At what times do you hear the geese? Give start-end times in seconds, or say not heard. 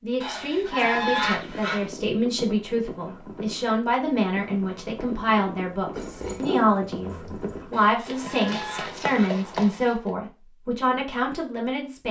0.2-1.9, 7.7-9.3.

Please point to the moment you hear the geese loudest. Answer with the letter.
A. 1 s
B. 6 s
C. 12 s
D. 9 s
A.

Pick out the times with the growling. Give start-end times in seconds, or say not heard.
5.9-7.7.